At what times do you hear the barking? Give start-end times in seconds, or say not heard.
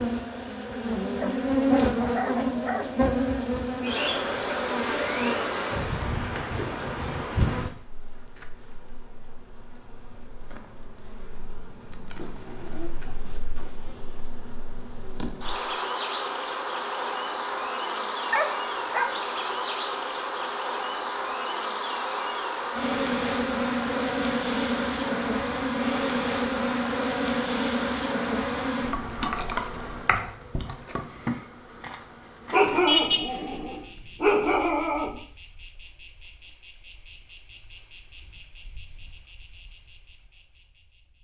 1.2-3.0, 18.3-19.2, 32.5-35.2.